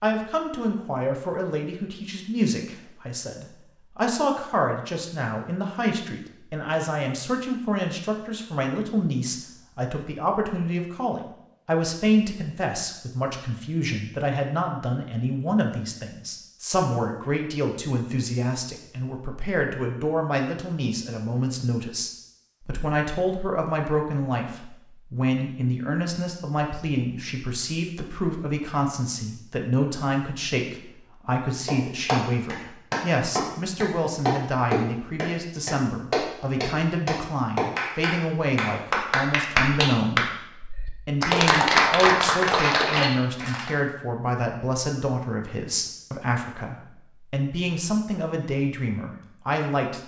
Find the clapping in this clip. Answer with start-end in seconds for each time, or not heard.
31.6-43.7.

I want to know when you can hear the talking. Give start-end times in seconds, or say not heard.
0.0-40.4, 41.0-50.0.